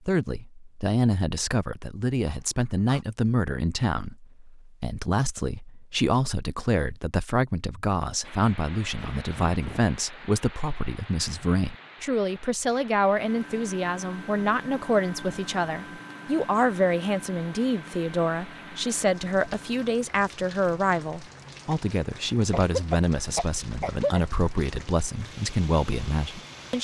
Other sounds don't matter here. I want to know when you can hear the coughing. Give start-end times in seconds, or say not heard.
2.2-3.0, 8.9-9.9, 22.5-24.2.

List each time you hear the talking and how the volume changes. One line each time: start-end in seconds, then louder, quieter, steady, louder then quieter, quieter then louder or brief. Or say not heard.
0.1-26.7 steady.